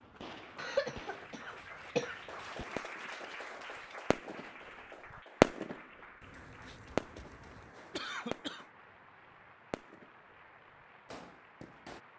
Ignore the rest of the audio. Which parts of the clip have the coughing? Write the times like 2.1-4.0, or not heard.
0.6-2.1, 6.2-8.7.